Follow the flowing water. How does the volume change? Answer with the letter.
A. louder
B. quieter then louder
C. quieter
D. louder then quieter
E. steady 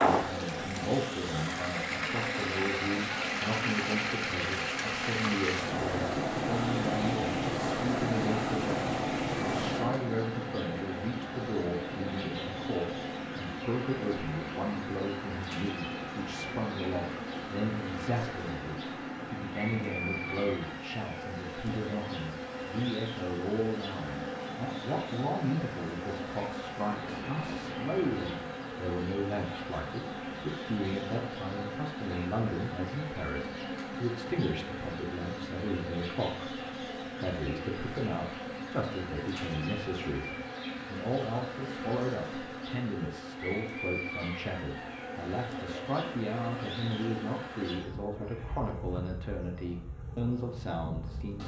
C.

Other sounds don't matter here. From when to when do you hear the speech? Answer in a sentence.
You can hear the speech from 0.1 to 51.4 s.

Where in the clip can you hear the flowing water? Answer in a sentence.
The flowing water can be heard from 0.0 to 28.4 s.